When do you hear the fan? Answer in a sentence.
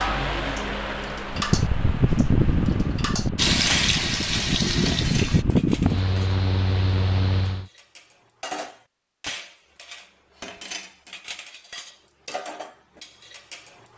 The fan can be heard from 0.0 to 7.7 s.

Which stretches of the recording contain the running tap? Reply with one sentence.
You can hear the running tap from 3.4 to 5.5 s.